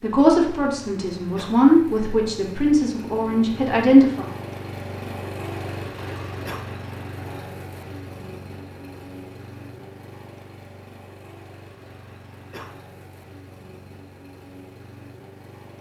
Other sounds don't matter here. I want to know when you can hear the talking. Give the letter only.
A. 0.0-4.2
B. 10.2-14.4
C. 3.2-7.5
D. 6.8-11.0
A.